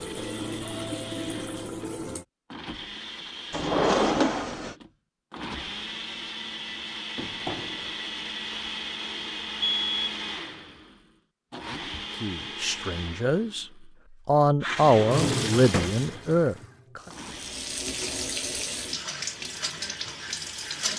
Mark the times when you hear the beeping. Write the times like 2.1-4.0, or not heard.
9.6-10.2.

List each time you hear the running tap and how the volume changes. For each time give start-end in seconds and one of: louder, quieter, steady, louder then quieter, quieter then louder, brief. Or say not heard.
0.0-2.2 brief
14.6-20.9 quieter then louder.